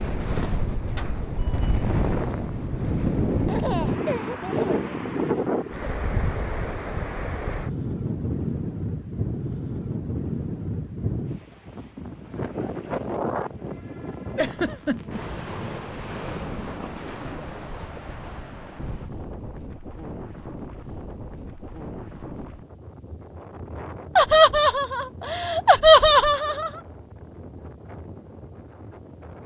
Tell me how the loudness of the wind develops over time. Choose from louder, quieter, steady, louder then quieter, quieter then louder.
quieter.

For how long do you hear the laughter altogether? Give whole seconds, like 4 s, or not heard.
5 s.